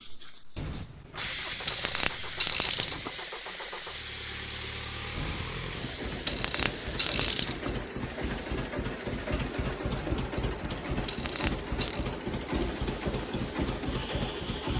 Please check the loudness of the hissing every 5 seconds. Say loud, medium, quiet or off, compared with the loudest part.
loud, medium, medium.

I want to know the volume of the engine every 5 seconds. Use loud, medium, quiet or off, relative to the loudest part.
medium, loud, loud.